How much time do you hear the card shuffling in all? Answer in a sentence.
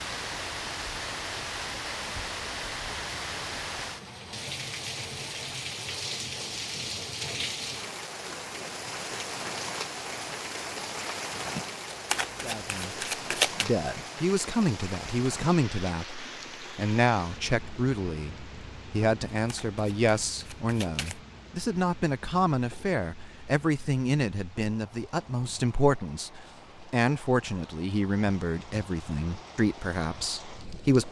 You can hear the card shuffling for 4 seconds altogether.